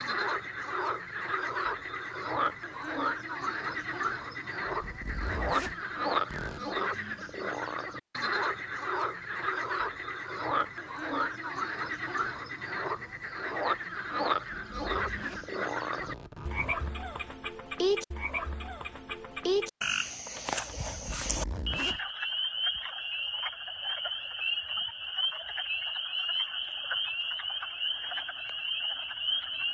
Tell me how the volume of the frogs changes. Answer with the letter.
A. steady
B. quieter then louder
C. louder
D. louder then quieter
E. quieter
A.